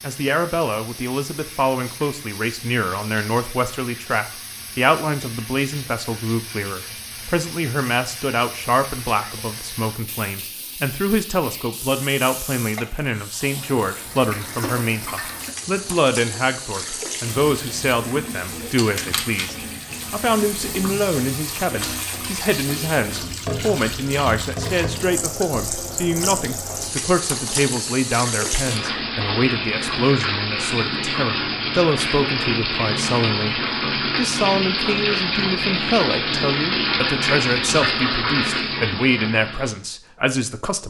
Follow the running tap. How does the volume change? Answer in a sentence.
The loudness of the running tap goes up.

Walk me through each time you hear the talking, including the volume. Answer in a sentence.
You can hear the talking from 0.0 to 40.8 s, at a steady volume.